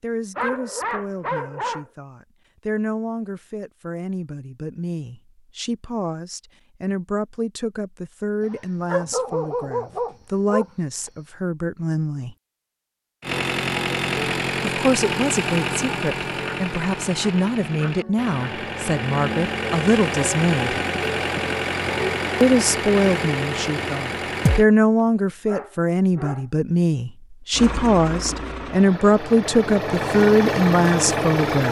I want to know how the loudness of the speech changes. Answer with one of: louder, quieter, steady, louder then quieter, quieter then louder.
louder.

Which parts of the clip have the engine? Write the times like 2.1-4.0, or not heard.
13.2-24.6, 27.5-31.6.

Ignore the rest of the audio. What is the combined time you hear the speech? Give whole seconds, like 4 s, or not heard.
28 s.